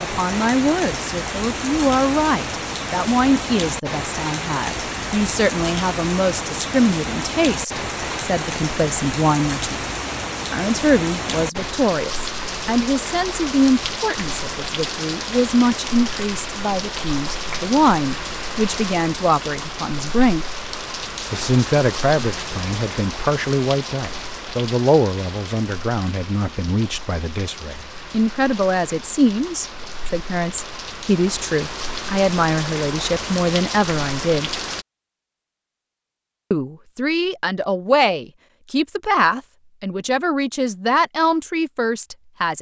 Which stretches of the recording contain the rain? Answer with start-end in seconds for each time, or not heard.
0.0-34.9.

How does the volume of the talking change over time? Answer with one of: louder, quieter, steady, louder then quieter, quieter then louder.
steady.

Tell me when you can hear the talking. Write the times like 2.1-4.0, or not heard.
0.0-9.8, 10.4-20.4, 21.3-34.5, 36.5-42.5.